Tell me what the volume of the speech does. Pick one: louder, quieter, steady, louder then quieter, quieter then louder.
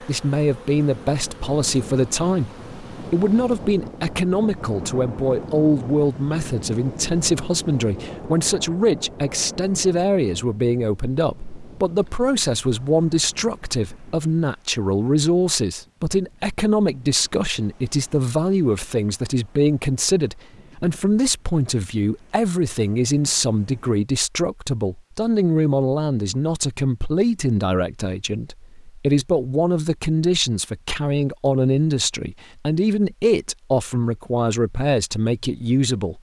steady.